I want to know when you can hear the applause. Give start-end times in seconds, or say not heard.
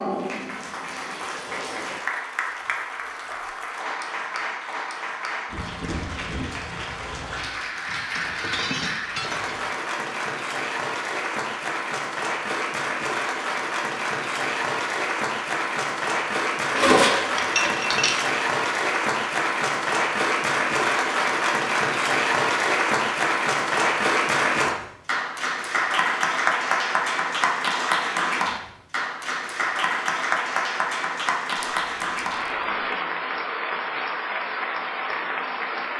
0.0-35.9.